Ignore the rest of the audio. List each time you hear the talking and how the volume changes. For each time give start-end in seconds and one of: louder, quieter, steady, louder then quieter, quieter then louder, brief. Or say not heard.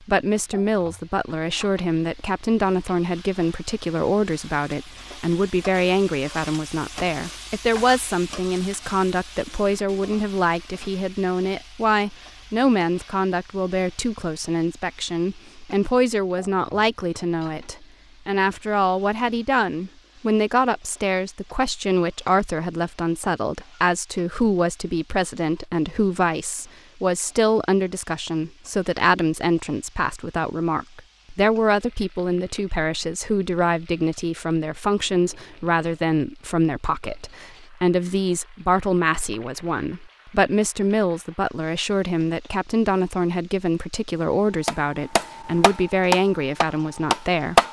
0.1-47.5 steady.